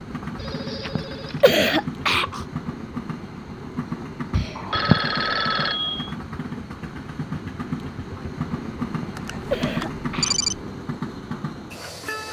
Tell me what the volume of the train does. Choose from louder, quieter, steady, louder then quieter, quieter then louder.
steady.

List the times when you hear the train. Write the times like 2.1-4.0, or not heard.
0.0-12.2.